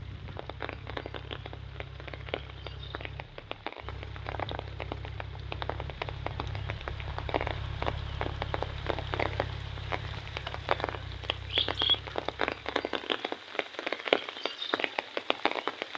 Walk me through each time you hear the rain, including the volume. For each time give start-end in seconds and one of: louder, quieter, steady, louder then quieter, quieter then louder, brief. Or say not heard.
0.0-15.9 louder.